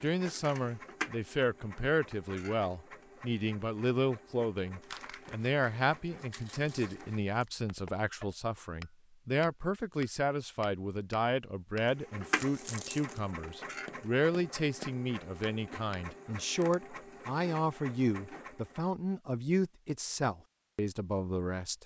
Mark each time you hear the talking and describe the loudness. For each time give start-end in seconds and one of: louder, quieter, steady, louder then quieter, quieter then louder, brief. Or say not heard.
0.0-21.8 steady.